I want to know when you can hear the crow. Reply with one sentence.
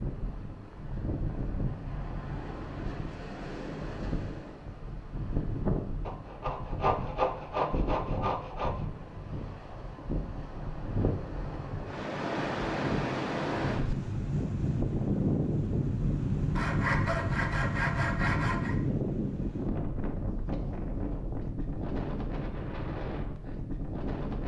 The crow can't be heard in this clip.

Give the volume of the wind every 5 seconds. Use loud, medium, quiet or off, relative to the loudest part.
medium, medium, loud, loud, medium.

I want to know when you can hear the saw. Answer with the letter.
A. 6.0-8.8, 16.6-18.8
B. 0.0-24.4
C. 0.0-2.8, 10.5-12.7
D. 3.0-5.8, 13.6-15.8
A.